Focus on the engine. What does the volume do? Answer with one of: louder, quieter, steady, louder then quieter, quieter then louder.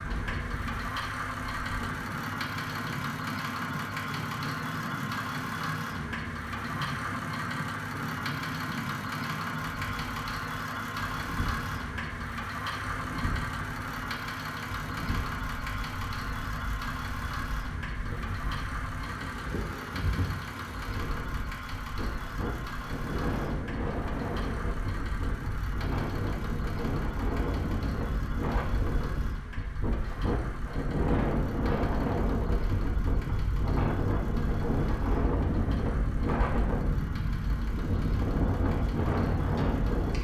quieter.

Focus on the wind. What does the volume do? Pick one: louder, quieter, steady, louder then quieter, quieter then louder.
louder.